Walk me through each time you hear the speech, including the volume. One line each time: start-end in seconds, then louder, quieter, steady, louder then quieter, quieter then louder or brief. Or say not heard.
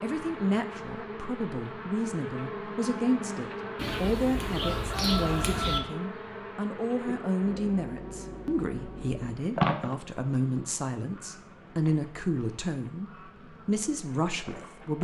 0.0-15.0 steady.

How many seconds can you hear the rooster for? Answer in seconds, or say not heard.
2 s.